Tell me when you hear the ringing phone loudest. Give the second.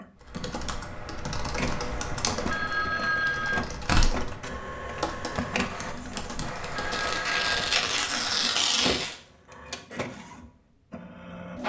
3 s.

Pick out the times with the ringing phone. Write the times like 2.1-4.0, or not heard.
2.5-3.6, 6.7-7.6.